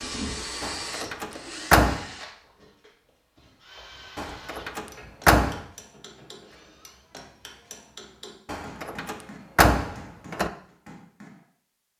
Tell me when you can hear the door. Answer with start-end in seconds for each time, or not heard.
0.6-2.0, 4.2-5.6, 8.4-10.5.